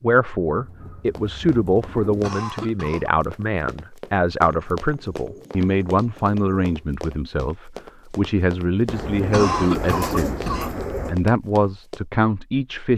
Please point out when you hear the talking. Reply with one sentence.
You can hear the talking from 0.0 to 12.9 s.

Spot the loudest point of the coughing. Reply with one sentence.
The loudest moment of the coughing is at 10 seconds.